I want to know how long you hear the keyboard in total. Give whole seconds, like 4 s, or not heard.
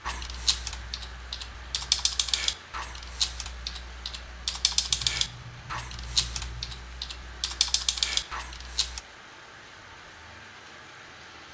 9 s.